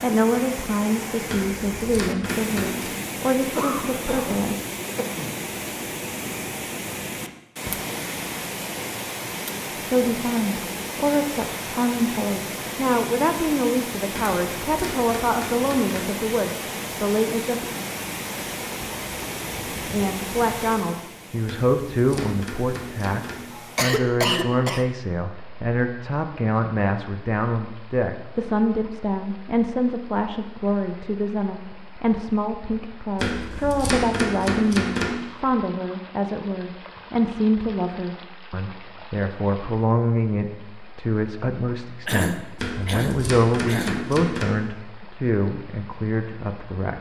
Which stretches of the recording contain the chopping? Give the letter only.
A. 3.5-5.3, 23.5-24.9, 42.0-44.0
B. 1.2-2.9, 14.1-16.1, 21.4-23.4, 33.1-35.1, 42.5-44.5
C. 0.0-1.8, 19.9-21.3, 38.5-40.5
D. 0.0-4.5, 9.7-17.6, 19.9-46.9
B.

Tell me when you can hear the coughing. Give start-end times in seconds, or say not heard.
3.5-5.3, 23.5-24.9, 42.0-44.0.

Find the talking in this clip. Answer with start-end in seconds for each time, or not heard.
0.0-4.5, 9.7-17.6, 19.9-46.9.